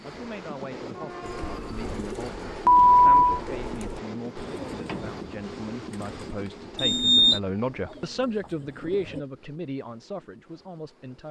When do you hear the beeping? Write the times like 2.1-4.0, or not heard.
2.6-3.4, 6.8-7.4.